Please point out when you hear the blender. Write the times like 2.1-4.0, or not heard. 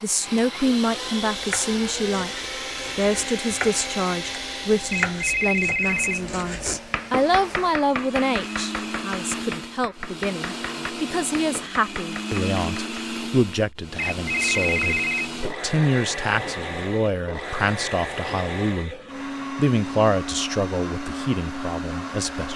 0.0-22.5.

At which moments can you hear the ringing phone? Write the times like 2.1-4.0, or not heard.
5.0-6.3, 14.2-15.3.